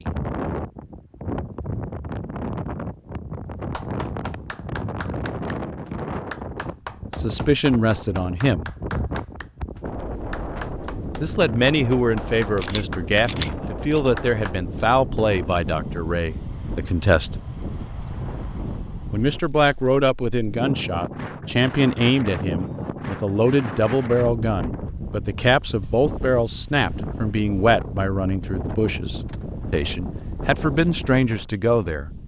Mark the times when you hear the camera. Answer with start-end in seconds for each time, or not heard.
12.6-14.0.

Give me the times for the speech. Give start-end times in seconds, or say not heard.
7.2-8.7, 11.2-17.4, 19.1-32.1.